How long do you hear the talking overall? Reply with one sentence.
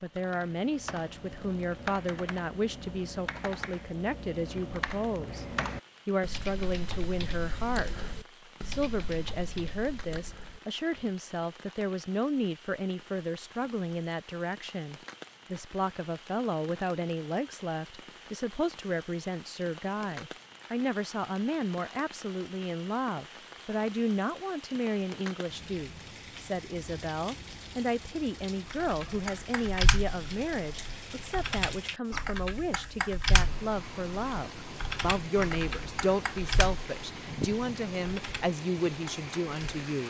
The talking can be heard for 39 seconds in total.